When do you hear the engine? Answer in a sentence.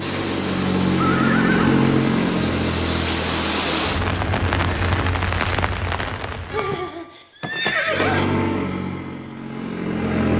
The engine can be heard from 0.0 to 5.2 s and from 7.8 to 10.3 s.